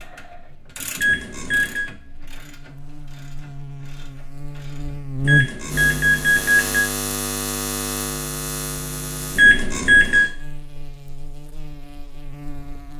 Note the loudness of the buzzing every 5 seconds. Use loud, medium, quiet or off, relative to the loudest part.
quiet, loud, quiet.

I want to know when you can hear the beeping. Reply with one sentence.
You can hear the beeping from 0.9 to 1.9 s, from 5.2 to 6.9 s and from 9.3 to 10.2 s.